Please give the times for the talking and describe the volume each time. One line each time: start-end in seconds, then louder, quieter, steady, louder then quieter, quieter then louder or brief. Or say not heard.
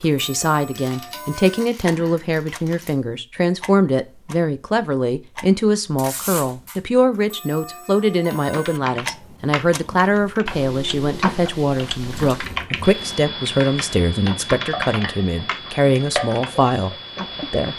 0.0-17.7 steady.